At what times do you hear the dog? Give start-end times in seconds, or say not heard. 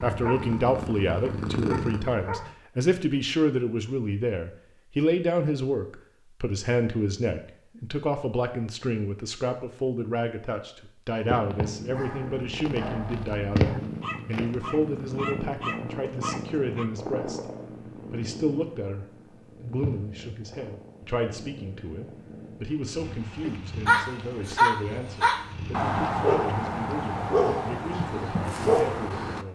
0.1-2.5, 11.9-16.9, 23.4-29.4.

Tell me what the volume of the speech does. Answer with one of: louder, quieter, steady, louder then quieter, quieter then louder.
quieter.